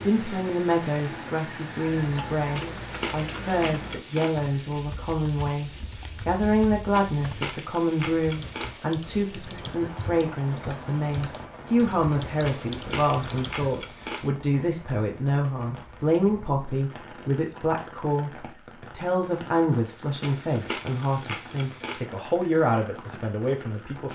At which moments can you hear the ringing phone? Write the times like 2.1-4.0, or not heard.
not heard.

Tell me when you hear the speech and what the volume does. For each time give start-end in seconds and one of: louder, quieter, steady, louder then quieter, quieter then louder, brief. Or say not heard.
0.0-24.1 steady.